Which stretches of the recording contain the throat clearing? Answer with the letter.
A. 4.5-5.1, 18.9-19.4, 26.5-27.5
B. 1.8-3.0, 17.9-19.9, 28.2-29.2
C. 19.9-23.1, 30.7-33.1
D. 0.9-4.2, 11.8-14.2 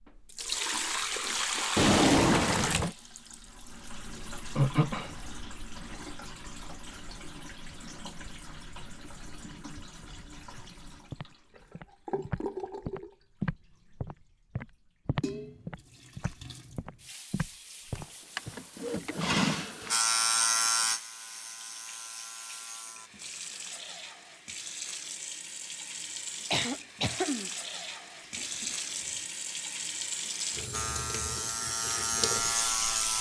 A.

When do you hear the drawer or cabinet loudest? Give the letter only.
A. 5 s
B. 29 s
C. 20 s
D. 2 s
D.